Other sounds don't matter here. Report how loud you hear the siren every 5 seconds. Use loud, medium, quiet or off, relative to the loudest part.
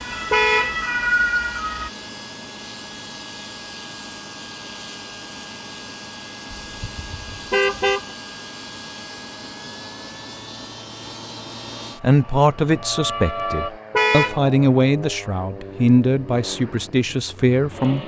loud, off, medium, off.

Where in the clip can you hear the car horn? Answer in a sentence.
The car horn can be heard from 0.3 to 0.8 s, from 6.5 to 8.2 s and from 13.9 to 14.4 s.